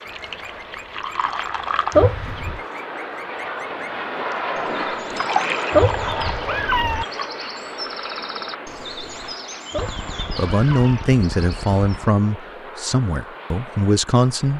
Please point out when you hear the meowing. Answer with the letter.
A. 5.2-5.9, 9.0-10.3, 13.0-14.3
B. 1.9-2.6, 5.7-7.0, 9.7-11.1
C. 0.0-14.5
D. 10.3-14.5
B.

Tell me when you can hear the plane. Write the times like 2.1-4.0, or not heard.
0.0-14.5.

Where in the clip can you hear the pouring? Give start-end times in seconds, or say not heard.
0.1-2.0, 5.1-7.2, 9.8-12.2.